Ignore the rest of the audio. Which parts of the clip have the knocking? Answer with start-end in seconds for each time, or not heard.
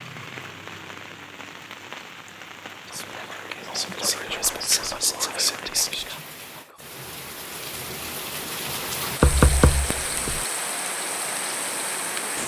9.2-10.4.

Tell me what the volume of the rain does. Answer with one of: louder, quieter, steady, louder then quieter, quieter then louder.
louder.